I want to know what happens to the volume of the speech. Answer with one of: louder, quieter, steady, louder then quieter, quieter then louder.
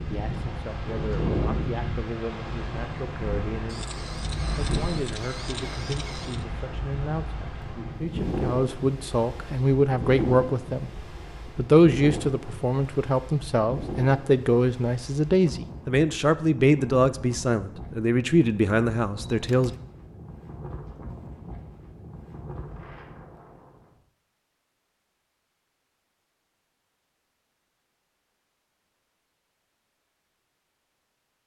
louder.